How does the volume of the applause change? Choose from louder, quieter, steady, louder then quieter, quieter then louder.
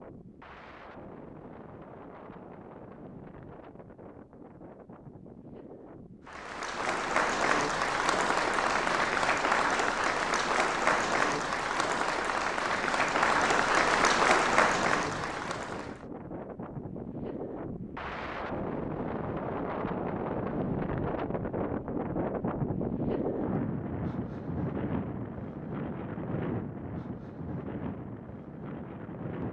steady.